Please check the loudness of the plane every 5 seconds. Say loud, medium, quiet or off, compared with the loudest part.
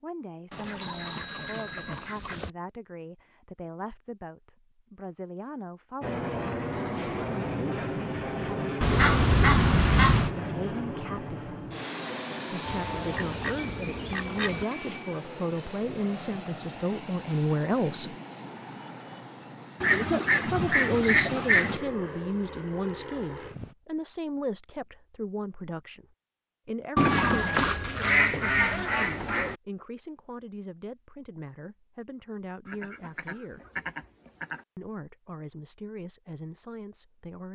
off, loud, loud, medium, medium, off, off, off.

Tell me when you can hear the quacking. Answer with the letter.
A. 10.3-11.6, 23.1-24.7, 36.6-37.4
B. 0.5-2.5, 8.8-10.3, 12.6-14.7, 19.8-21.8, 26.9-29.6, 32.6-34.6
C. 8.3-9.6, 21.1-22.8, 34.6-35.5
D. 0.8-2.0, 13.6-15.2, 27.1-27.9
B.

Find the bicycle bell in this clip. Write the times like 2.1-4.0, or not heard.
0.8-2.0, 13.6-15.2, 27.1-27.9.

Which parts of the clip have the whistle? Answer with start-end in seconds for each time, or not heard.
not heard.